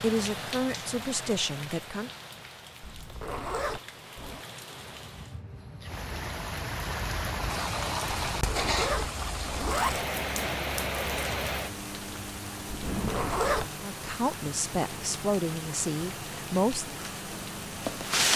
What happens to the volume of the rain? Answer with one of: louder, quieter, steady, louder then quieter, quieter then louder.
louder then quieter.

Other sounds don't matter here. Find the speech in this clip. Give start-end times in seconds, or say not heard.
0.0-2.1, 13.8-17.0.